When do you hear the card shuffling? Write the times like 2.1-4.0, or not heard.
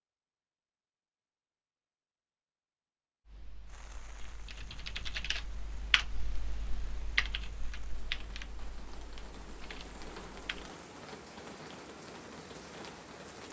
not heard.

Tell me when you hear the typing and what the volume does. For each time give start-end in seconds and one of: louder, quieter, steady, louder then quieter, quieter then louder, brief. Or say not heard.
3.2-10.7 louder then quieter.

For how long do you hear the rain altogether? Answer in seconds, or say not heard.
10 s.